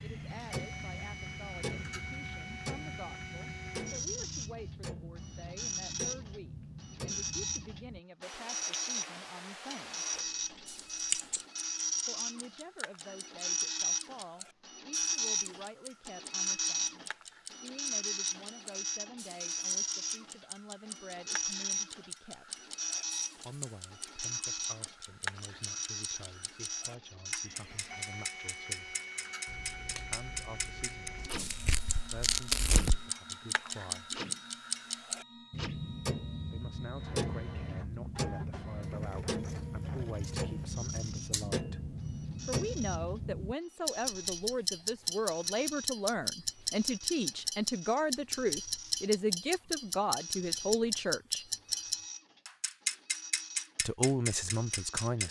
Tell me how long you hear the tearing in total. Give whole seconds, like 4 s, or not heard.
2 s.